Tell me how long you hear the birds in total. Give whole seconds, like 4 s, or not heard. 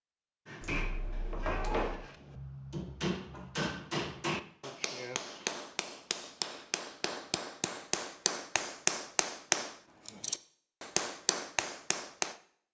not heard.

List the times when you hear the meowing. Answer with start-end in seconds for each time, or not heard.
0.6-2.0.